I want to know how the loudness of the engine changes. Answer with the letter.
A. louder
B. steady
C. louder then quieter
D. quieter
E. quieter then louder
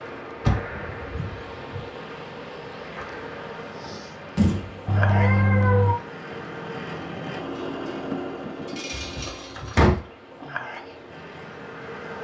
C.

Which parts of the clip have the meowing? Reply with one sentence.
You can hear the meowing from 4.8 to 6.0 s.